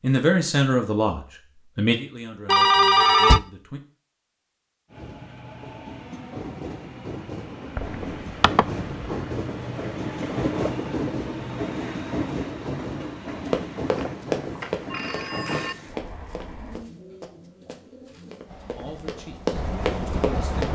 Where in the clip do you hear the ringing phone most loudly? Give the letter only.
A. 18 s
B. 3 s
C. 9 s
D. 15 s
B.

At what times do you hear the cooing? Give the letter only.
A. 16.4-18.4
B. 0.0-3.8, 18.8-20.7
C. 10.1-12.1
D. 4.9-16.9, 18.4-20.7
A.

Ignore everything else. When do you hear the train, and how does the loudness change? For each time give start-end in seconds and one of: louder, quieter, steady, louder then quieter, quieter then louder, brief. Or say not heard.
4.9-16.9 louder then quieter
18.4-20.7 brief.